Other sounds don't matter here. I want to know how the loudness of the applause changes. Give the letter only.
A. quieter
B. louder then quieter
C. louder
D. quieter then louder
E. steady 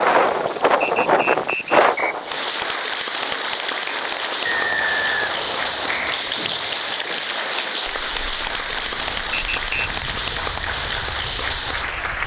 C.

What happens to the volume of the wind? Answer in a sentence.
The loudness of the wind goes down.